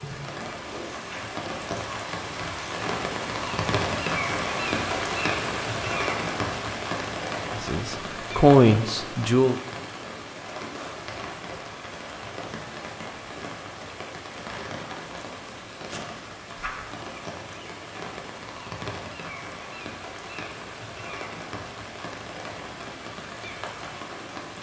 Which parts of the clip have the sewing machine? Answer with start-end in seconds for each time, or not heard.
not heard.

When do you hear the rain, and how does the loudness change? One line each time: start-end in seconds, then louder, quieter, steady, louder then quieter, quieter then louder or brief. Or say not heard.
0.0-24.5 quieter.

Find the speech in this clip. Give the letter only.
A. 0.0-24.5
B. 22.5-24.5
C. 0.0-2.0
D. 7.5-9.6
D.